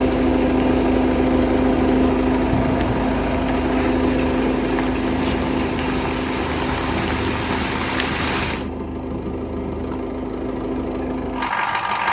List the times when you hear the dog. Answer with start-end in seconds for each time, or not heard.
not heard.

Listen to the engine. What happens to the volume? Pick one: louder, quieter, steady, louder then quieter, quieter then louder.
quieter.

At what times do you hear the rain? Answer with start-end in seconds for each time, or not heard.
0.0-8.7.